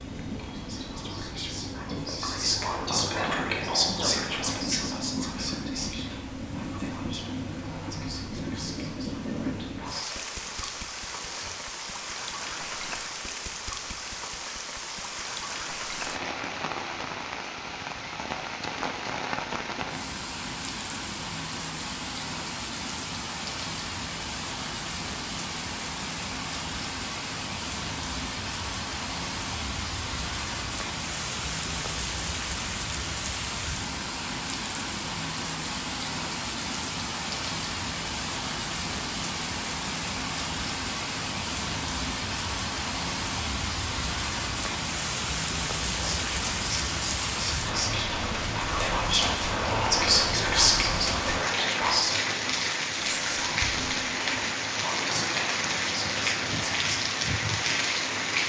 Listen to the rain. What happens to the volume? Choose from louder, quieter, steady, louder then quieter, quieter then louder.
louder.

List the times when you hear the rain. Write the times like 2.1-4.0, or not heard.
0.0-58.4.